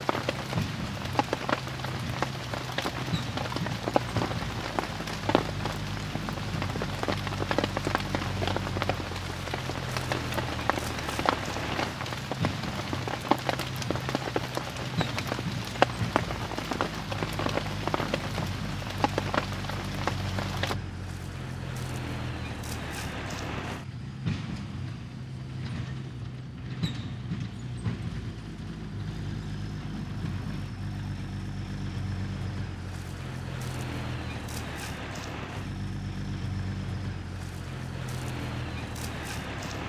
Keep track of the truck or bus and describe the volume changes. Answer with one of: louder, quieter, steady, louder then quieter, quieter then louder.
steady.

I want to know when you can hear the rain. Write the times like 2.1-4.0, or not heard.
0.0-20.8.